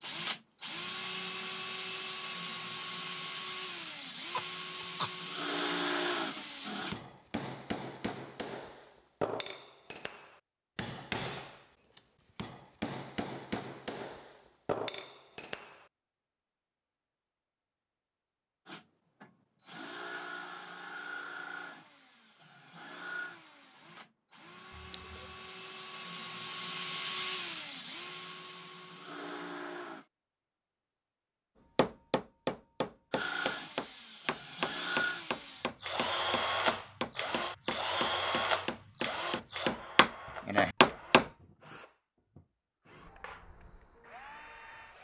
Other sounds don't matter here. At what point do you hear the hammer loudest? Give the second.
41 s.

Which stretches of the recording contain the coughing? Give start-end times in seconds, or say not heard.
4.3-5.2, 24.7-25.4.